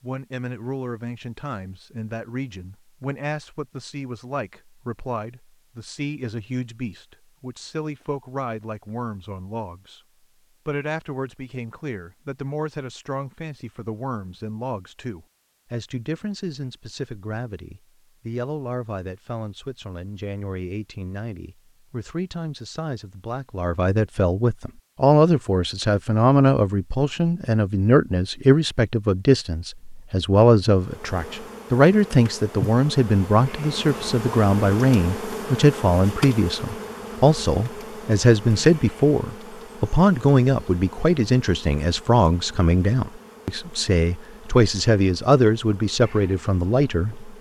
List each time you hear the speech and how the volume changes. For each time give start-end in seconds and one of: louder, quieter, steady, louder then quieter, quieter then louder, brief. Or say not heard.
0.0-10.0 steady
10.7-47.3 louder.